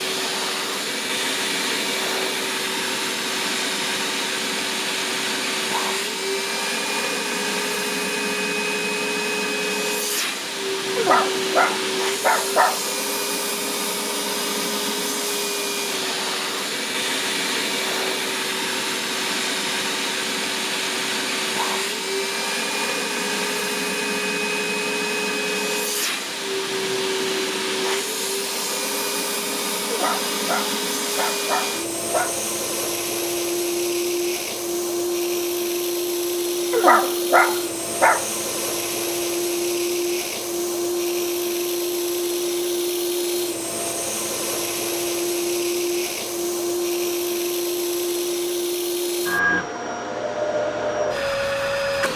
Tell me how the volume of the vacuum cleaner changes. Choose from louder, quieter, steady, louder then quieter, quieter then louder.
steady.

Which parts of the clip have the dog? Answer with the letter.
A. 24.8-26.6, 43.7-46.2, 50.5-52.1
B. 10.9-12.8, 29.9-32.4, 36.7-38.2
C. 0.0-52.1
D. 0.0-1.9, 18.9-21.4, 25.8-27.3
B.